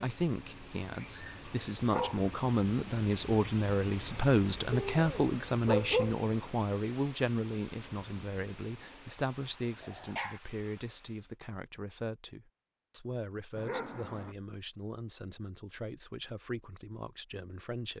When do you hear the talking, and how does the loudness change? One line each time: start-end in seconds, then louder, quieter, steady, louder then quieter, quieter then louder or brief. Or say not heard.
0.0-17.9 quieter.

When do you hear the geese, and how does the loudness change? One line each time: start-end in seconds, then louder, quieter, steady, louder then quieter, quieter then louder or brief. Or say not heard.
not heard.